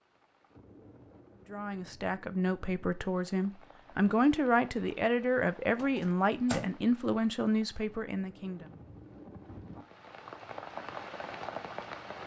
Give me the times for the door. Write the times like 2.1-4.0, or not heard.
5.8-6.8.